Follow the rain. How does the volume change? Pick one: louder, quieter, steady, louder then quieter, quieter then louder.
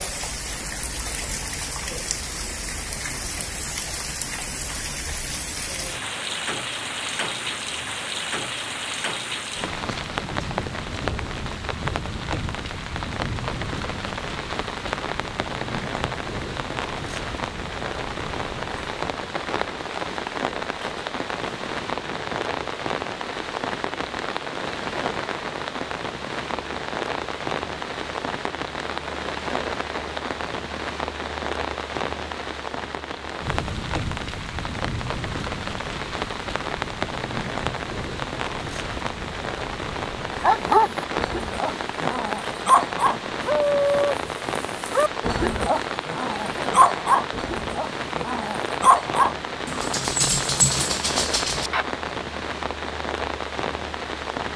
steady.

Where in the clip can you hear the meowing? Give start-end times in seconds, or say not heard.
not heard.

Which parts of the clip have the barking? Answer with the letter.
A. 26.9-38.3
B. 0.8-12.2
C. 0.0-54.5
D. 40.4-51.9
D.